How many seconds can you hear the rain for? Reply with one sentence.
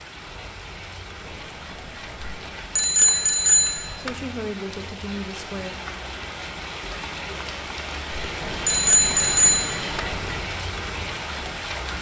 You can hear the rain for 12 seconds altogether.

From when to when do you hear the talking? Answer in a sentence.
You can hear the talking from 4.0 to 5.8 s.